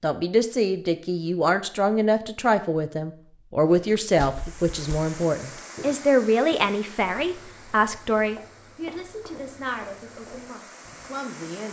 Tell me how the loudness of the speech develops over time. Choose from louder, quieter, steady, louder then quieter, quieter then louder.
quieter.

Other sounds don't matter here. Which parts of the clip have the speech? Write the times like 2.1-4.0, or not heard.
0.0-11.6.